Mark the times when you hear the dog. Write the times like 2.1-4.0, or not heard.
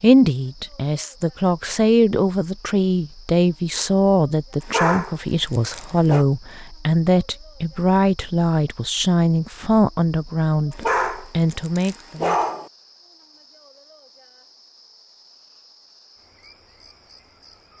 4.6-6.2, 10.7-12.7.